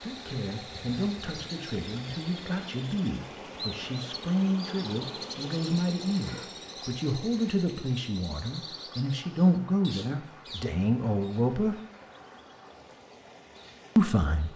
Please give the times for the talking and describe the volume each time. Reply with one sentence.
The talking can be heard from 0.0 to 11.8 s, getting louder; and briefly from 13.9 to 14.5 s.